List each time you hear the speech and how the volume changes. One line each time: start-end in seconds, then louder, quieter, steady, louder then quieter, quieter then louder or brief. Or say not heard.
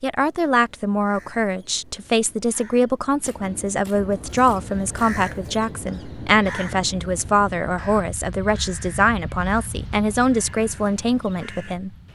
0.0-11.9 steady.